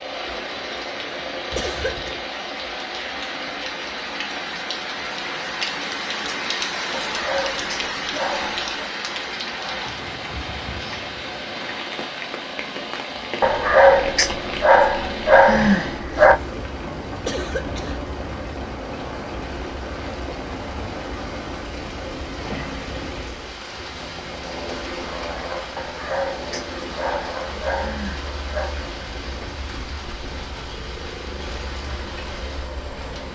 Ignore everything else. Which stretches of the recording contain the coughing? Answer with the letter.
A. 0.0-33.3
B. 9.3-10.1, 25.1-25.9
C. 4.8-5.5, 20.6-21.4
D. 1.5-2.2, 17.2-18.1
D.